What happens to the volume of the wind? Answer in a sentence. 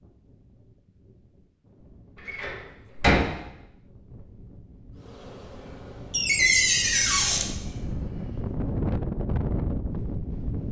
The loudness of the wind goes up.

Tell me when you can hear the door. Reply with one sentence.
You can hear the door from 2.1 to 3.2 s and from 6.1 to 7.5 s.